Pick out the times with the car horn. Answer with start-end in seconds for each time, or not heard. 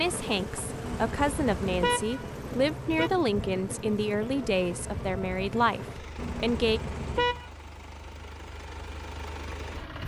0.8-3.1, 6.2-7.5.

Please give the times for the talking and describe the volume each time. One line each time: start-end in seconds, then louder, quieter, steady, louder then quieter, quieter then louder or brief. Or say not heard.
0.0-6.8 steady.